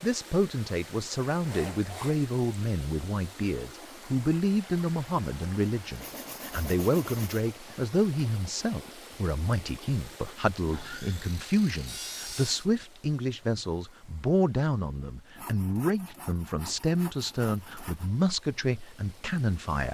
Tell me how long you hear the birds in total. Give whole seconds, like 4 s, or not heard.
not heard.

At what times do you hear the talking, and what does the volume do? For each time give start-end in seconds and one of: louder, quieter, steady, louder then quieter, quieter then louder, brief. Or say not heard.
0.0-19.8 steady.